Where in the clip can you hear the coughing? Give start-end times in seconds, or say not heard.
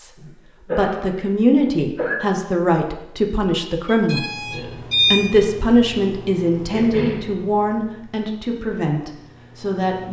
0.1-2.1, 6.7-7.2.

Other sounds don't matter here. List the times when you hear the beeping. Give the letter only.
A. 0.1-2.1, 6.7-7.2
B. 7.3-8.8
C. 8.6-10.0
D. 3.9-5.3
D.